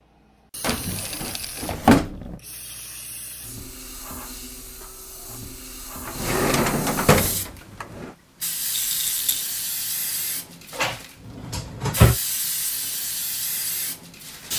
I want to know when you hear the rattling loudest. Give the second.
9 s.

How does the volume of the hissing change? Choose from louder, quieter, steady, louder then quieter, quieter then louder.
louder.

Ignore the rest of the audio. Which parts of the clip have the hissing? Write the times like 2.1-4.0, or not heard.
0.0-14.5.